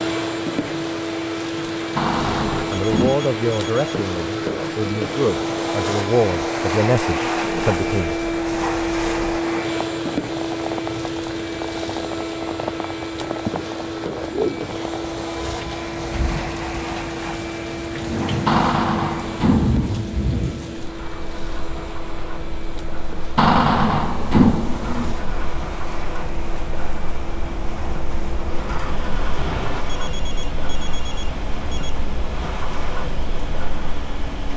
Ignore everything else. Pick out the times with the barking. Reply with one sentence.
You can't hear the barking here.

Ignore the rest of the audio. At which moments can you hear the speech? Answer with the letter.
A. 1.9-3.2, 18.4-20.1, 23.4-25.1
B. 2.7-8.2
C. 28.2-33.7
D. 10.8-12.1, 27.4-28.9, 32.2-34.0
B.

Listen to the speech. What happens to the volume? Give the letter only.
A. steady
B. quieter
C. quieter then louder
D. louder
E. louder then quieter
C.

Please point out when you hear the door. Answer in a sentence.
The door can be heard from 1.9 to 3.2 s, from 18.4 to 20.1 s and from 23.4 to 25.1 s.